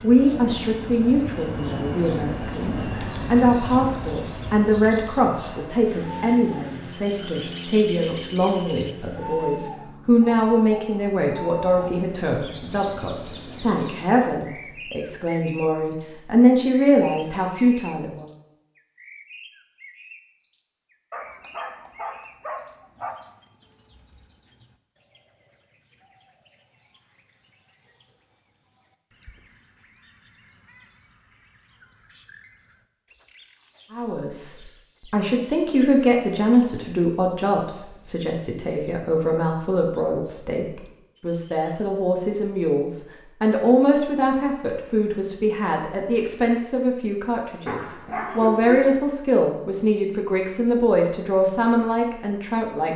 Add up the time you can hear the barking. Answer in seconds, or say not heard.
3 s.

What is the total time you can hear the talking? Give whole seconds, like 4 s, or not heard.
37 s.